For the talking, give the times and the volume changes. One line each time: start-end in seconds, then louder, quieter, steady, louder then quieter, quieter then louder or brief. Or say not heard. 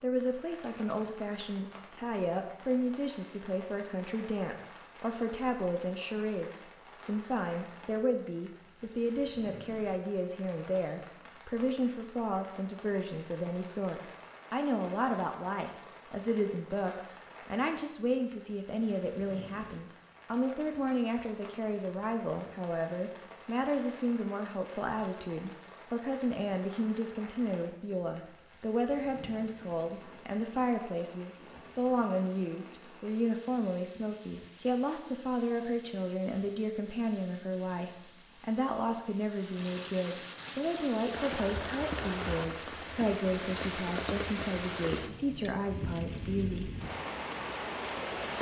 0.0-46.7 steady.